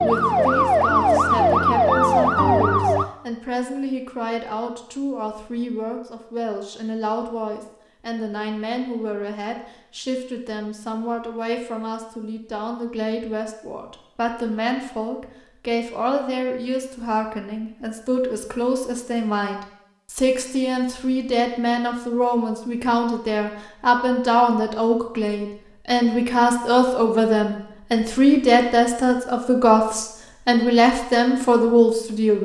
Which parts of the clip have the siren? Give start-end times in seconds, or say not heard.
0.0-3.0.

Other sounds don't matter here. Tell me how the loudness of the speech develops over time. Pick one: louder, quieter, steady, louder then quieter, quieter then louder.
louder.